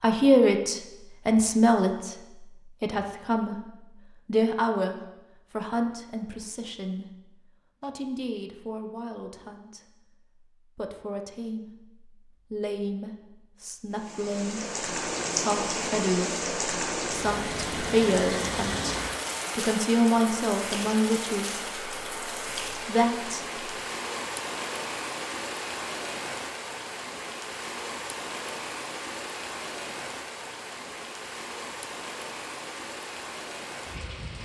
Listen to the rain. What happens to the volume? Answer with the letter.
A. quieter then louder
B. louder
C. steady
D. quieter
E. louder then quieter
D.